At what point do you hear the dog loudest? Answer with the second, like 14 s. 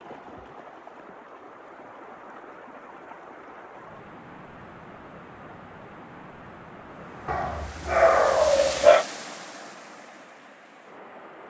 9 s.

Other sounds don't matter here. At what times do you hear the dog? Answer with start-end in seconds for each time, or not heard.
7.2-9.1.